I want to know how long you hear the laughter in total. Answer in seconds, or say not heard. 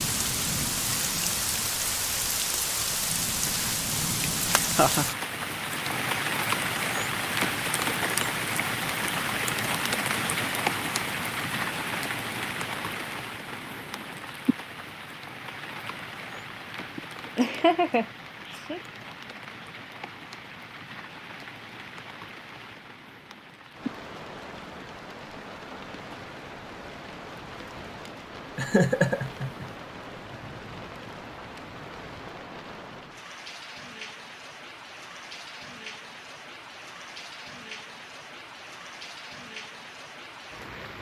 4 s.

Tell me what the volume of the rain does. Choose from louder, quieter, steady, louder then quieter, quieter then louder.
quieter.